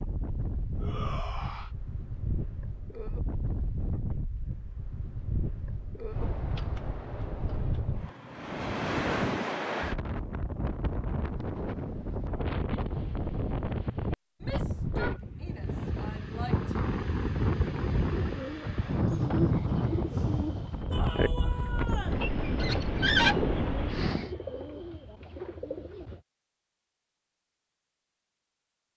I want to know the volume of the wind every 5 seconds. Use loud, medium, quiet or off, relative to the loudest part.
medium, loud, loud, loud, loud, off.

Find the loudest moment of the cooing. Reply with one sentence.
The loudest moment of the cooing is at 23 seconds.